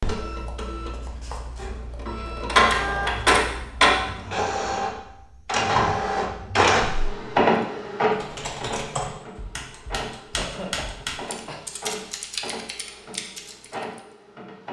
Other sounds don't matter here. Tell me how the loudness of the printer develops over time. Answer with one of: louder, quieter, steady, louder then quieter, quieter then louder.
quieter.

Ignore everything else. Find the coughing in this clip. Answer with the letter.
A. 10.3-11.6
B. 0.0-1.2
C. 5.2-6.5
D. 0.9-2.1
A.